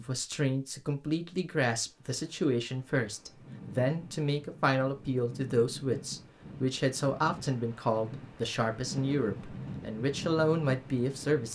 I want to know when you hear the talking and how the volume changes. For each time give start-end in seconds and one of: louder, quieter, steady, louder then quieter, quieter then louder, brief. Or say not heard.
0.0-11.5 steady.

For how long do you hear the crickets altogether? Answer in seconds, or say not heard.
not heard.